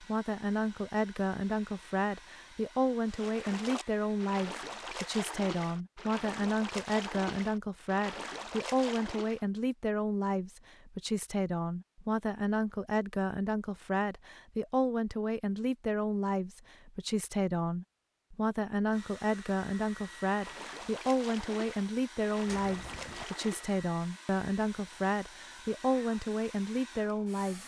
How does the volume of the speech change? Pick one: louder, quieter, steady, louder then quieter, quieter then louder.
steady.